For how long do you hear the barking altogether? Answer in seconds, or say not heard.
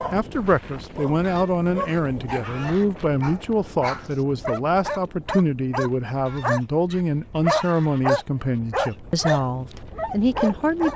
11 s.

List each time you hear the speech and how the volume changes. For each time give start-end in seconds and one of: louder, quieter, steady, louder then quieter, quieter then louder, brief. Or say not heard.
0.1-10.9 steady.